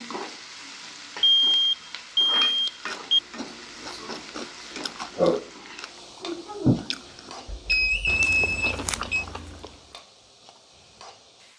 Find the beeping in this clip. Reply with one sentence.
The beeping can be heard from 1.2 to 3.2 s and from 7.5 to 9.2 s.